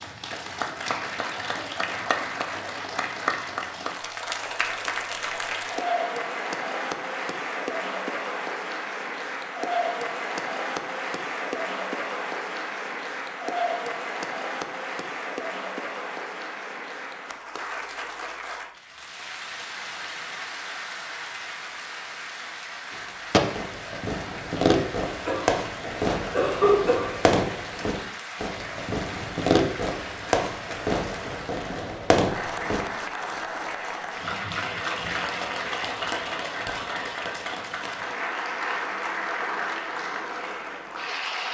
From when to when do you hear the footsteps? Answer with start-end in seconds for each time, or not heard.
not heard.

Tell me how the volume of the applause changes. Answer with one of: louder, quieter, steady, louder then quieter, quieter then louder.
quieter then louder.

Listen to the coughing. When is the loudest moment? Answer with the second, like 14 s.
27 s.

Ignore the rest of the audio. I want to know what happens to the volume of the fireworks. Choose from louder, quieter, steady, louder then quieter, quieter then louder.
steady.